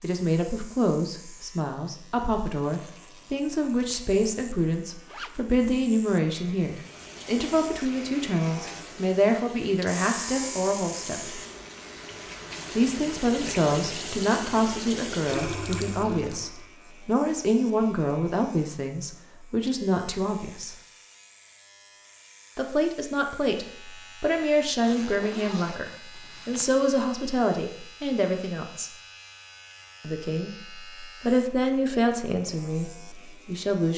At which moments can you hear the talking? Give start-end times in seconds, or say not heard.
0.0-11.4, 12.8-20.8, 22.6-28.9, 30.0-33.9.